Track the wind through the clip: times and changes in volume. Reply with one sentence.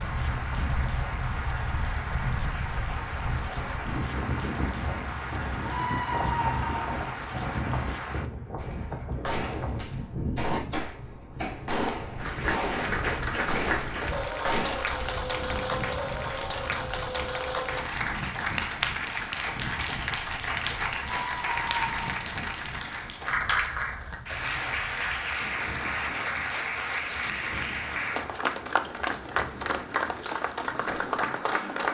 The wind can be heard from 0.0 to 31.8 s, getting quieter.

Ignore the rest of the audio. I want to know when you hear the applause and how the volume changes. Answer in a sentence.
The applause can be heard from 0.0 to 8.3 s, at a steady volume; and from 12.2 to 31.8 s, at a steady volume.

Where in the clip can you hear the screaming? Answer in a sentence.
You can hear the screaming from 5.7 to 6.9 s and from 21.0 to 22.1 s.